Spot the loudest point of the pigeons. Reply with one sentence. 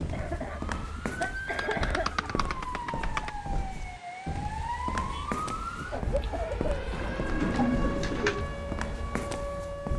The loudest moment of the pigeons is at 8 seconds.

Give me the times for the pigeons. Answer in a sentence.
You can hear the pigeons from 1.4 to 3.3 s and from 6.9 to 8.4 s.